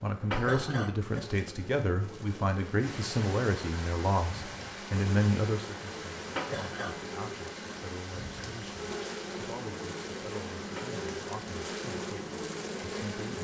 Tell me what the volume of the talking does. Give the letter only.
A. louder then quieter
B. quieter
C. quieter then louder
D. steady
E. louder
B.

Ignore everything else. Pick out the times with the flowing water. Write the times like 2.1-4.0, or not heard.
2.8-13.3.